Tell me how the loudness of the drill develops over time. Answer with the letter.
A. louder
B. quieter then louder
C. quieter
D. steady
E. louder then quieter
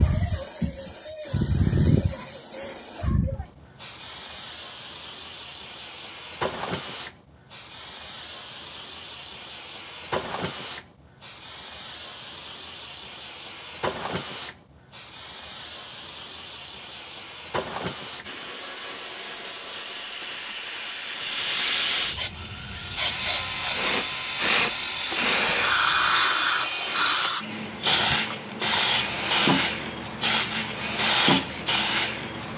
D.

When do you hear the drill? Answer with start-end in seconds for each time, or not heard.
22.3-32.5.